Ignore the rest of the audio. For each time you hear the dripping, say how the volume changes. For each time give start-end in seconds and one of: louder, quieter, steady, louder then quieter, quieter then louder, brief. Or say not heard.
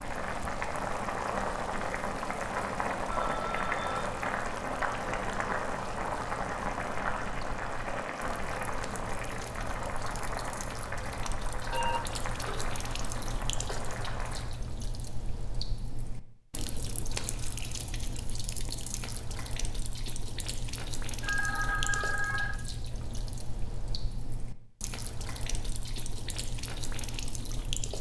0.0-27.9 louder.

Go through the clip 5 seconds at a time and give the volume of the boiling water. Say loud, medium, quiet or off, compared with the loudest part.
loud, loud, medium, off, off, off.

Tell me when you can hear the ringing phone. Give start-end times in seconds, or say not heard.
3.0-4.1, 11.7-12.7, 21.2-22.6.